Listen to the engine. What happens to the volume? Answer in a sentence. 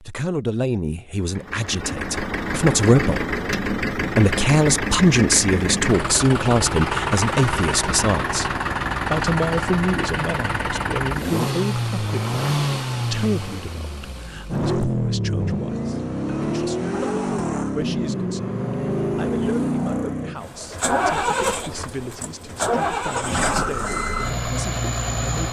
The loudness of the engine stays about the same.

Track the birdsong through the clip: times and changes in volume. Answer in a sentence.
The birdsong can't be heard in this clip.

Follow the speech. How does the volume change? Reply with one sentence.
The loudness of the speech goes down.